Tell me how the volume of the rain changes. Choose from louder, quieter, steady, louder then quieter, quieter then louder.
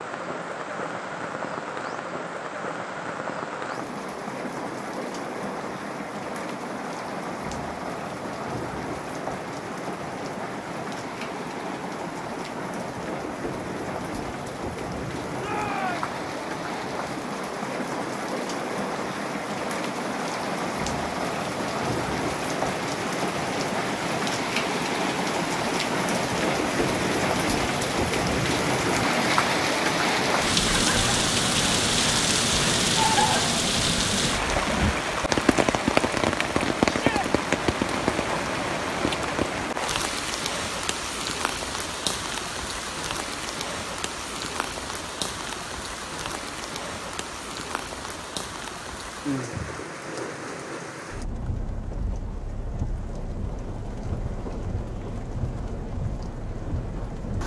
louder then quieter.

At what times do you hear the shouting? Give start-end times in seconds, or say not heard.
15.3-16.1, 36.9-37.3.